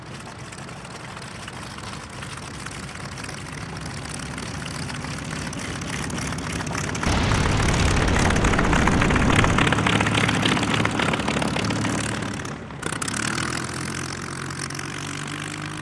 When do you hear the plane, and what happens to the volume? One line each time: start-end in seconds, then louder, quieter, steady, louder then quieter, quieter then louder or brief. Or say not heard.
0.0-15.7 louder then quieter.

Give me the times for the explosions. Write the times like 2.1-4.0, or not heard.
7.0-9.7.